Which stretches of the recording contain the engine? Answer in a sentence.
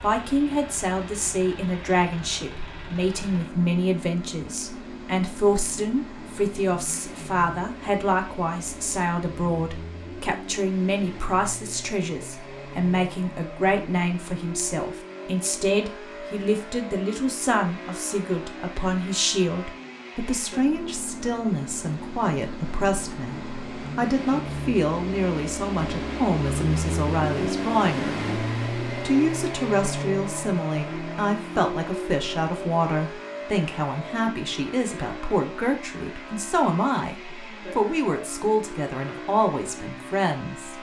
The engine can be heard from 0.0 to 40.7 s.